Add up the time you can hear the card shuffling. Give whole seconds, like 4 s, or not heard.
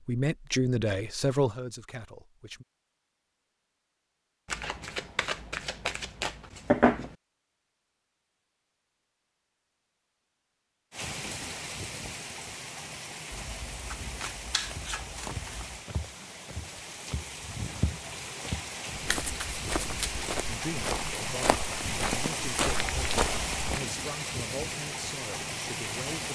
6 s.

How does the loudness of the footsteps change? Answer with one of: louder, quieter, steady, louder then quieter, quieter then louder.
louder.